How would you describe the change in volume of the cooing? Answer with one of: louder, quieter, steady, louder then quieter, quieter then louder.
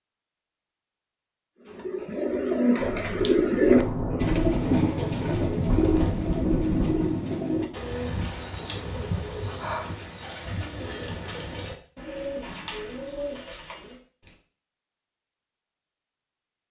quieter.